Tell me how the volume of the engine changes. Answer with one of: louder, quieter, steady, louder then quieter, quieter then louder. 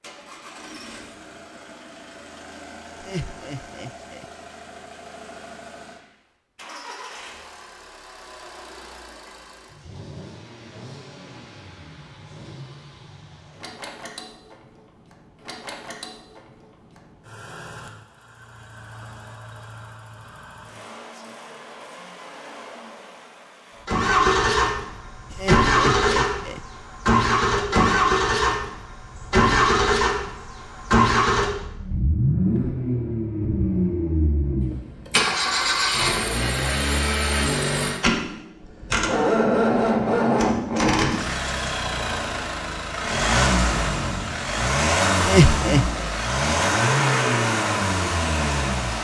louder.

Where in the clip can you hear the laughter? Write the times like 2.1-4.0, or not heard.
3.0-4.2, 25.3-26.6, 45.2-46.0.